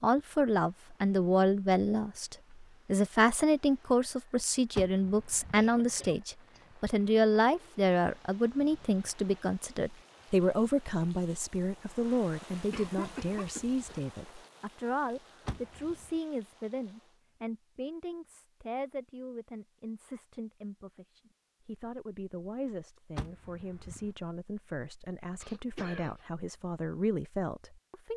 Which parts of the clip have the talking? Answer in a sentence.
You can hear the talking from 0.0 to 28.1 s.